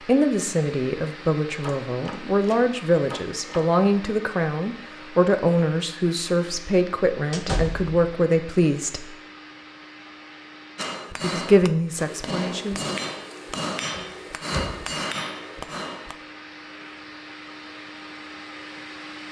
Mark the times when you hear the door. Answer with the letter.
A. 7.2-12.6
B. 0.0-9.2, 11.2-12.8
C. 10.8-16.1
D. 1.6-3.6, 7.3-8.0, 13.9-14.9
D.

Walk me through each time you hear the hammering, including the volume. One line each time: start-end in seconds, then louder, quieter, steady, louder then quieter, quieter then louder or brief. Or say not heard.
10.8-16.1 steady.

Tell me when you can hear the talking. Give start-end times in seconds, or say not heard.
0.0-9.2, 11.2-12.8.